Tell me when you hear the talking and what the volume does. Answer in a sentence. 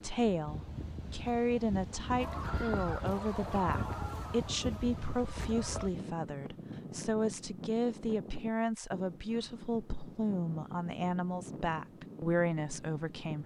You can hear the talking from 0.0 to 13.4 s, at a steady volume.